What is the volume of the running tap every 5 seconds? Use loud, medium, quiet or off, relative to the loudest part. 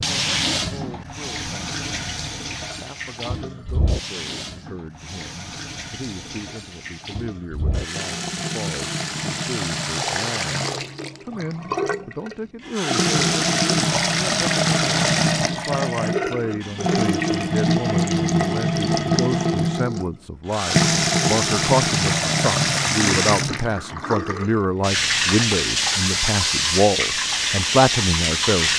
medium, medium, loud, loud, loud, loud.